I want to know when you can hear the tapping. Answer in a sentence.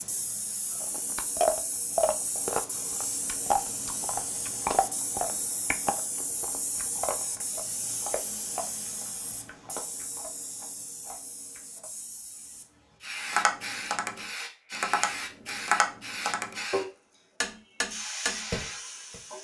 The tapping can be heard from 13.3 to 19.2 s.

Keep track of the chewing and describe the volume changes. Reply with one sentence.
The volume of the chewing goes down.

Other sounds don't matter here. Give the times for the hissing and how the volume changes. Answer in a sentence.
The hissing can be heard from 0.0 to 19.3 s, at a steady volume.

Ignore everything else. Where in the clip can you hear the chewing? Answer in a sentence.
You can hear the chewing from 0.8 to 11.9 s.